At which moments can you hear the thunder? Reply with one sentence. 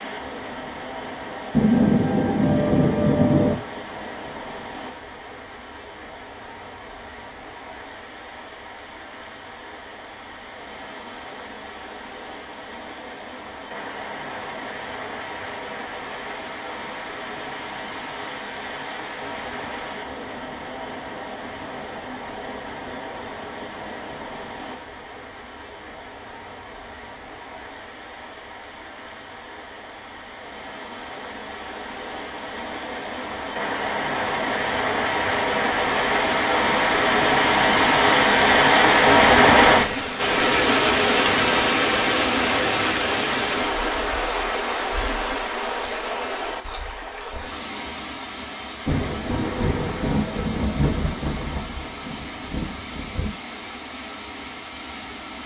You can hear the thunder from 1.5 to 3.5 s and from 48.9 to 53.3 s.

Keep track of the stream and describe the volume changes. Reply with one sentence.
The volume of the stream goes up, then down.